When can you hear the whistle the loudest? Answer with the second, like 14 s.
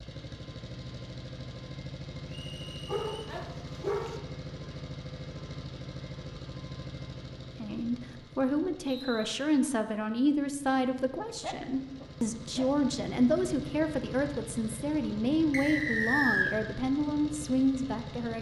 16 s.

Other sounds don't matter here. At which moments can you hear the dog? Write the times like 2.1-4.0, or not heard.
2.9-4.2, 11.4-12.7.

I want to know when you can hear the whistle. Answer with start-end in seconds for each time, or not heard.
2.2-3.3, 8.8-9.3, 15.5-16.6.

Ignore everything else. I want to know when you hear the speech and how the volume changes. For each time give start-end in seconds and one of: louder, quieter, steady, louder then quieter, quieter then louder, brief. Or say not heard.
7.5-18.3 steady.